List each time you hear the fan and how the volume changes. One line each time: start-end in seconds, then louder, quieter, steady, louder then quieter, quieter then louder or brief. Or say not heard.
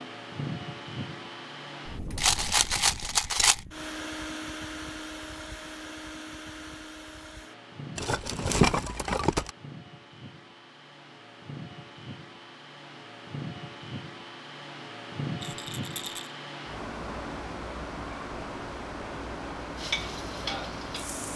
0.0-21.3 quieter then louder.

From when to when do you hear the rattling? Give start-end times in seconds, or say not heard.
2.1-3.6, 8.0-9.5, 15.4-16.3.